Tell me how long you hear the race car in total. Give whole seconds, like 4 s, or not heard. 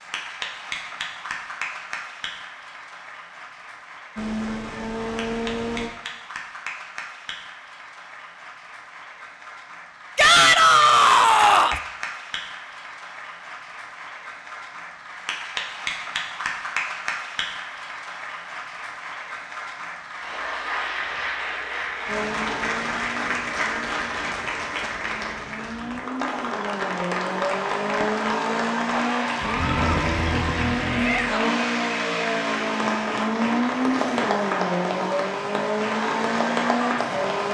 17 s.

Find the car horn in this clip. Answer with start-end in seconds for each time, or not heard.
not heard.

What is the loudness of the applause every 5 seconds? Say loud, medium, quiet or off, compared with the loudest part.
medium, medium, medium, loud, loud, loud, loud, loud.